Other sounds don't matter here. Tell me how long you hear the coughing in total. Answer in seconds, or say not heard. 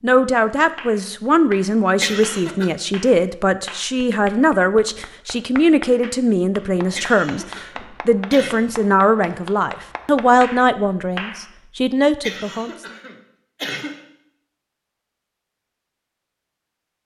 4 s.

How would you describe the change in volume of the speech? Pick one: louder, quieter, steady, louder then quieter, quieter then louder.
steady.